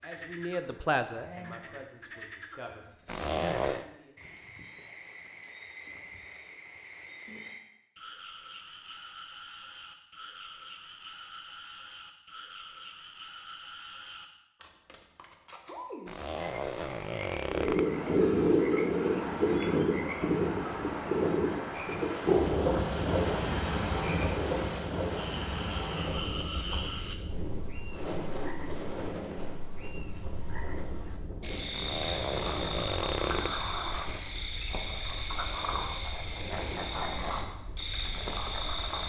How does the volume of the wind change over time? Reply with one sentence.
The volume of the wind goes down.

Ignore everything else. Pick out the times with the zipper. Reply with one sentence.
You can hear the zipper from 3.0 to 3.9 s, from 16.1 to 17.9 s and from 31.7 to 33.5 s.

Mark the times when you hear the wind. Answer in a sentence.
You can hear the wind from 17.4 to 39.0 s.